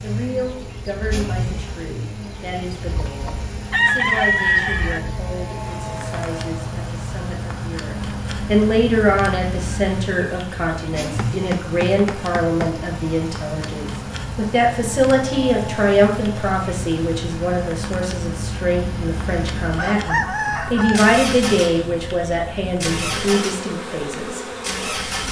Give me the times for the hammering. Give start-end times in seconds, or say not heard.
11.0-12.8.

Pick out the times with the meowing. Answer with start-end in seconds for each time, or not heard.
not heard.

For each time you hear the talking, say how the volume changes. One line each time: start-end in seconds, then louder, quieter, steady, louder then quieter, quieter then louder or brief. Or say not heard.
0.0-24.4 louder.